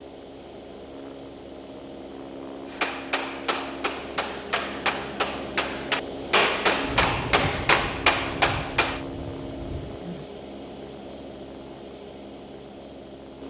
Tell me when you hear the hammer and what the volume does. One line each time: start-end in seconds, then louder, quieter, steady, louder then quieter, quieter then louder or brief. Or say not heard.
2.6-9.1 louder.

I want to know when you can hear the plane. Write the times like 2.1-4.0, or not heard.
0.0-13.4.